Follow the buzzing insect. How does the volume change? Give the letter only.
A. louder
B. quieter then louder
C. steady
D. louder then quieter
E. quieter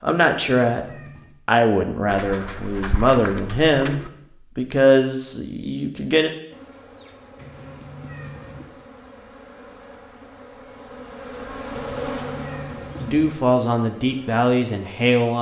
D.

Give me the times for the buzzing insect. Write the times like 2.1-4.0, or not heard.
6.5-15.1.